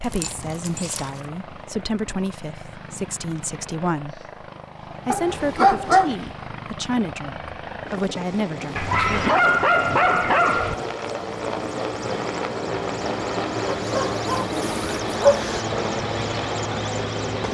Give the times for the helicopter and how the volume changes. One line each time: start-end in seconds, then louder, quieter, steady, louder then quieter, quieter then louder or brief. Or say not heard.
0.0-17.4 louder.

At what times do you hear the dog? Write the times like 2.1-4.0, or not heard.
0.1-1.1, 5.1-6.2, 8.8-10.8, 13.9-15.6.